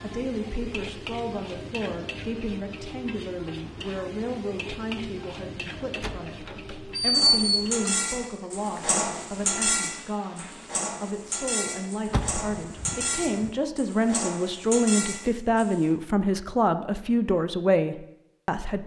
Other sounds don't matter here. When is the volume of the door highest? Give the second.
7 s.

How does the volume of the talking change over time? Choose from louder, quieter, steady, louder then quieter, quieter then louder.
louder.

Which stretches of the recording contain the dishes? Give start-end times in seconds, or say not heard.
7.1-15.9.